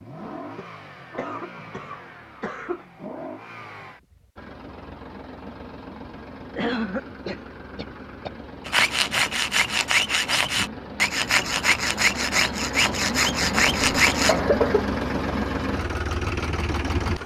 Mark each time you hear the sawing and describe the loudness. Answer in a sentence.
The sawing can be heard from 8.7 to 14.4 s, at a steady volume.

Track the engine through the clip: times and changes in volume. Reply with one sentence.
The engine can be heard from 0.0 to 17.2 s, getting louder.